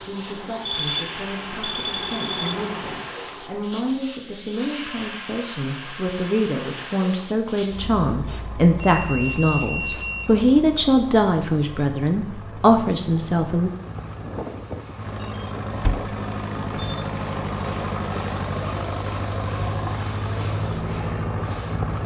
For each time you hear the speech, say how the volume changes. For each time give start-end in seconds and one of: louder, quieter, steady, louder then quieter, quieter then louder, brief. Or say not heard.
0.0-13.7 louder.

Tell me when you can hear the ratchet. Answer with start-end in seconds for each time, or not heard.
not heard.